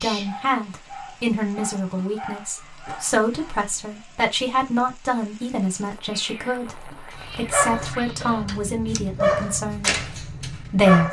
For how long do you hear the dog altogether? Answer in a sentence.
You can hear the dog for 7 seconds altogether.